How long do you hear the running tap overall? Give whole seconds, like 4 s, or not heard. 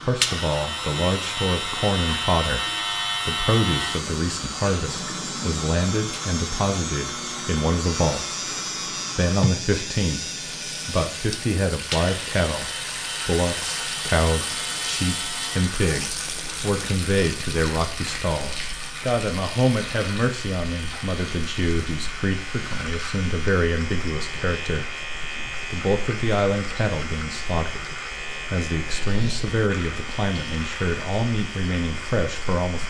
33 s.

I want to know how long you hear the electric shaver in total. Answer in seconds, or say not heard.
33 s.